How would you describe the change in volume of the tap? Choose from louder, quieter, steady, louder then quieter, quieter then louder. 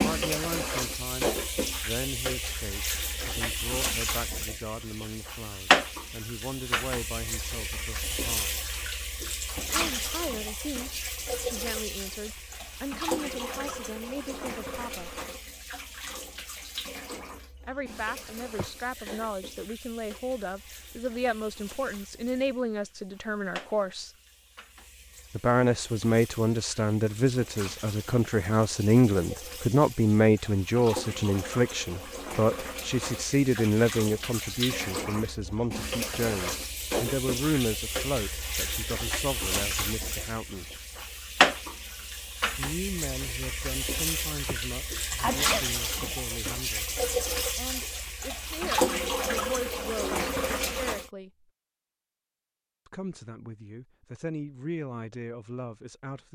quieter then louder.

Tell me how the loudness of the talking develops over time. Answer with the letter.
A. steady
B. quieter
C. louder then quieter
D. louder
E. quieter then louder
C.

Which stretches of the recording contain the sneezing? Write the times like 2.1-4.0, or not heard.
18.6-19.2, 44.5-45.6.